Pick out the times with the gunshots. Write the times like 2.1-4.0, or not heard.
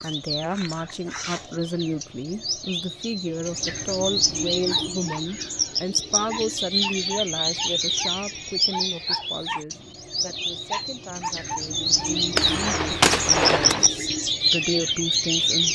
12.3-13.9.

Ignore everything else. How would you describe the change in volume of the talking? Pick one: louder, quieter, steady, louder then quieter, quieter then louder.
quieter then louder.